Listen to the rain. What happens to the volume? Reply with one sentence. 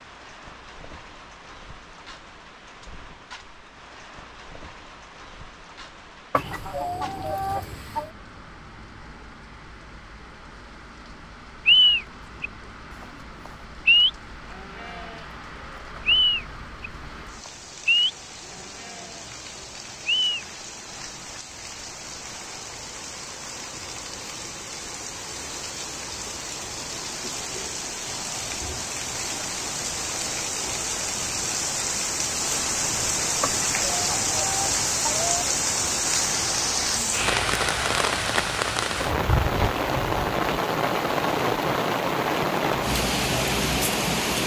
The volume of the rain goes up.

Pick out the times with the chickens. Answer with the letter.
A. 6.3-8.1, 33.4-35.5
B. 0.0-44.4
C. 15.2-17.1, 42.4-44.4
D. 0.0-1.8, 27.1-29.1
A.